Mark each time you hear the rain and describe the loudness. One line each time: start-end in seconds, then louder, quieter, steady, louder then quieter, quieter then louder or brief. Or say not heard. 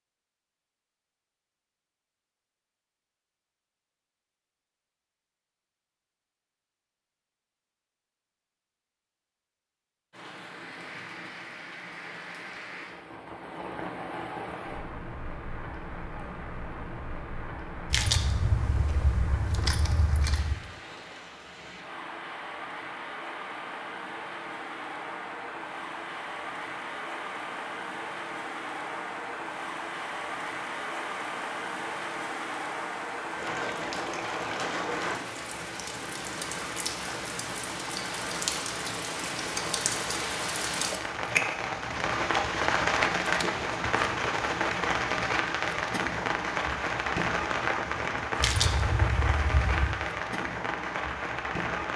10.1-51.9 louder.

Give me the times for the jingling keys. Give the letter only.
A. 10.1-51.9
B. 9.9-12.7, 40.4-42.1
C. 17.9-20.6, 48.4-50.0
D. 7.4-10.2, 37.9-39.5
C.